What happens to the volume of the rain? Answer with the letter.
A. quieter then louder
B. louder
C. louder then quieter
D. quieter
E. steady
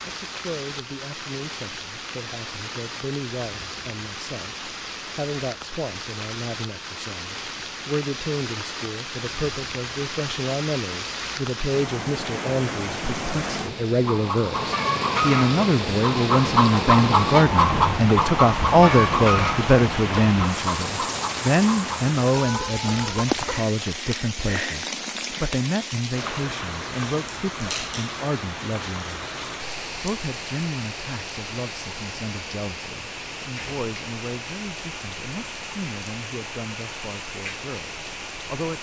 C.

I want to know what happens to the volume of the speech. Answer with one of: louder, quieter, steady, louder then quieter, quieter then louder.
louder then quieter.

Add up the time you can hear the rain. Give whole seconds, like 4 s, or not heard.
39 s.